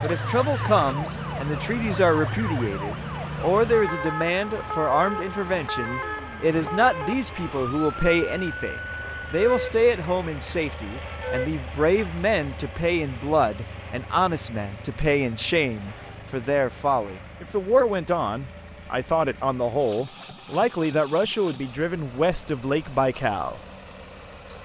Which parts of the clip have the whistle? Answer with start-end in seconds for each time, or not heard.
not heard.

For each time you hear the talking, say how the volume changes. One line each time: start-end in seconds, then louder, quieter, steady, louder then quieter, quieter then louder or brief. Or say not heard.
0.0-23.6 steady.